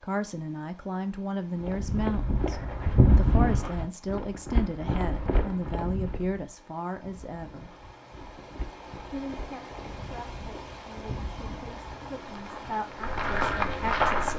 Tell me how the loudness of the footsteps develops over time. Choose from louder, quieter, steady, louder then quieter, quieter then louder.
quieter then louder.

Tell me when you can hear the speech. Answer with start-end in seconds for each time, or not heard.
0.0-7.8, 9.1-14.3.